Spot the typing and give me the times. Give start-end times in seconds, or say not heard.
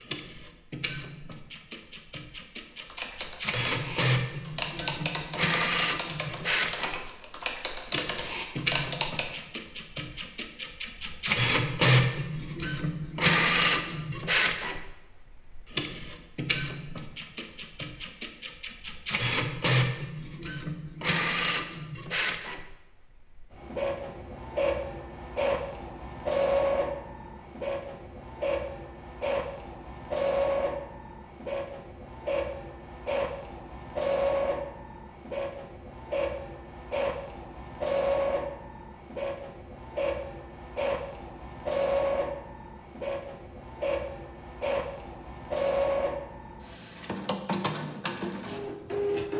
2.8-9.3.